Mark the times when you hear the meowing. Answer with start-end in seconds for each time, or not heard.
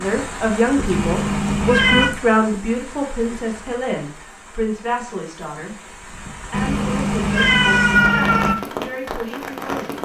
0.9-2.1, 6.5-8.6.